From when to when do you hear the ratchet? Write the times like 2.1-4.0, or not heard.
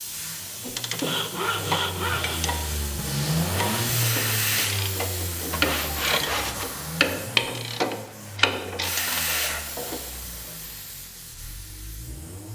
0.7-10.0.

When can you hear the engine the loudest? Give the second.
4 s.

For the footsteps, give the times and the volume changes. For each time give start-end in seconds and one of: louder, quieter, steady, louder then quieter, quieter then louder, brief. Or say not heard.
not heard.